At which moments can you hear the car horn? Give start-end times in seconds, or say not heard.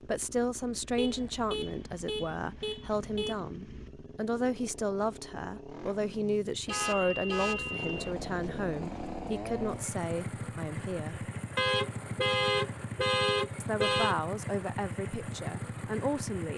0.9-3.4, 6.7-8.2, 11.6-14.2.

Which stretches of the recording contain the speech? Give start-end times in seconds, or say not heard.
0.0-11.2, 13.6-16.5.